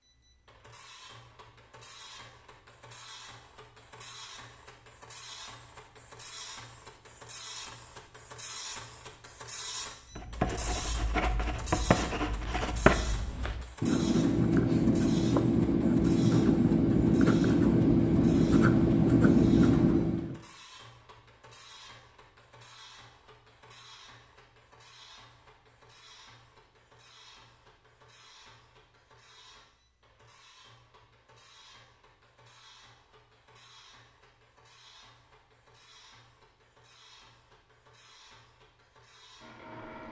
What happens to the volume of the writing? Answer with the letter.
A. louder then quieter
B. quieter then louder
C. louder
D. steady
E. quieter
C.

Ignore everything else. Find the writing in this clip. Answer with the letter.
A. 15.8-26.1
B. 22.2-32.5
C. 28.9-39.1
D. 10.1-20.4
D.